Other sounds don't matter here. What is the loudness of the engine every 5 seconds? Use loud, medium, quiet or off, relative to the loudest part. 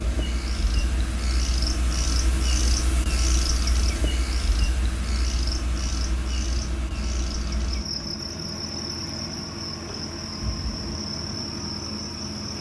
medium, loud, loud.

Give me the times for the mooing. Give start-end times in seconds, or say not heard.
not heard.